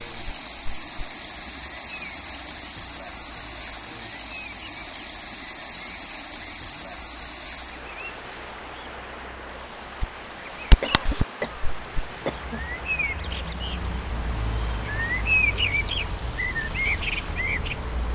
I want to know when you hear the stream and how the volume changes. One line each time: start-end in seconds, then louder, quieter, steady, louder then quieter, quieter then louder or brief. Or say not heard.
0.0-18.1 steady.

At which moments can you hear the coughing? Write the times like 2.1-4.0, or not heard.
10.8-12.7.